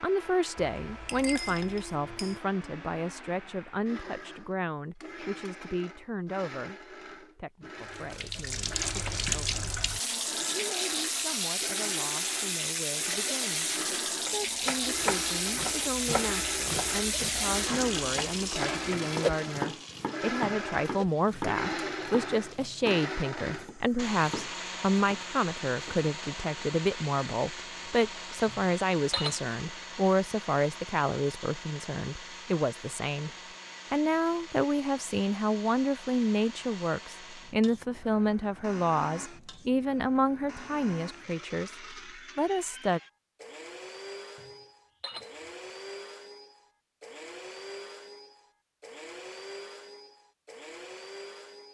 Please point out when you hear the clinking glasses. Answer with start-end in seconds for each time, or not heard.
0.7-2.4, 28.4-29.6, 44.4-45.5.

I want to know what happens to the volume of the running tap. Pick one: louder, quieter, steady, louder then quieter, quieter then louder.
quieter.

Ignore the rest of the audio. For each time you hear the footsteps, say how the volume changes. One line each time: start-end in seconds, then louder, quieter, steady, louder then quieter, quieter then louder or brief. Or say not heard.
not heard.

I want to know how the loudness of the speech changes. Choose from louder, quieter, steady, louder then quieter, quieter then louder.
quieter then louder.